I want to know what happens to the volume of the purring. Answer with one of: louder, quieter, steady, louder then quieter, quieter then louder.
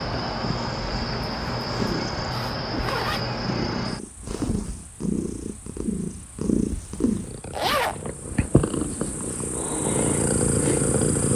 louder.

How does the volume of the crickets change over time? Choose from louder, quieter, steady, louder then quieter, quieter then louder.
quieter then louder.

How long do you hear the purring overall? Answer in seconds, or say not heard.
11 s.